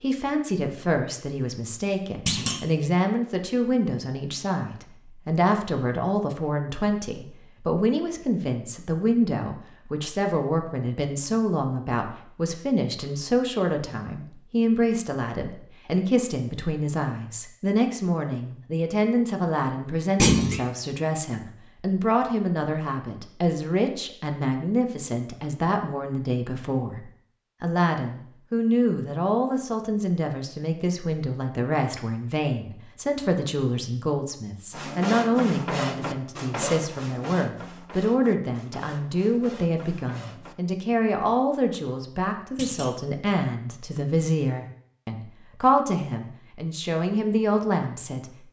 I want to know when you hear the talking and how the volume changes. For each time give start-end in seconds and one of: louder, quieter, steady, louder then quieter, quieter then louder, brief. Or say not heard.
0.0-48.2 steady.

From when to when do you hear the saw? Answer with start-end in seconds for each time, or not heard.
34.7-40.5.